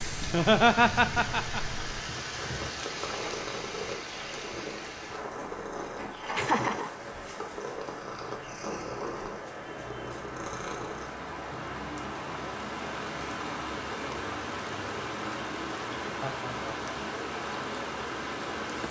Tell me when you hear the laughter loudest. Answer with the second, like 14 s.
1 s.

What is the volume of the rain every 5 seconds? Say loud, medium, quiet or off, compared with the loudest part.
loud, medium, loud, loud.